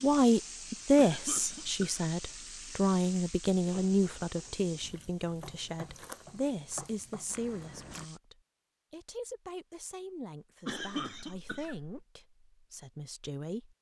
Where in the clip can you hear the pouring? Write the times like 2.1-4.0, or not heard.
not heard.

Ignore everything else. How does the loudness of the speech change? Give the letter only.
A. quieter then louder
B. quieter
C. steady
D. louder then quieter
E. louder
B.